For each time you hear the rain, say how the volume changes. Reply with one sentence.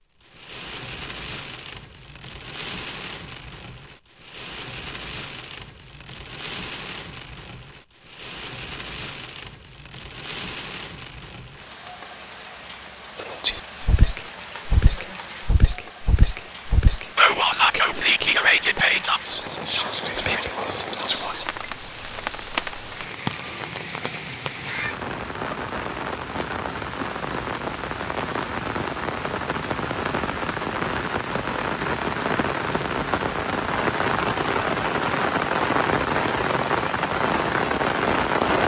The rain can be heard from 0.1 to 38.6 s, getting louder.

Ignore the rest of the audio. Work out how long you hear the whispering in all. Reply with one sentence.
The whispering can be heard for 8 seconds in total.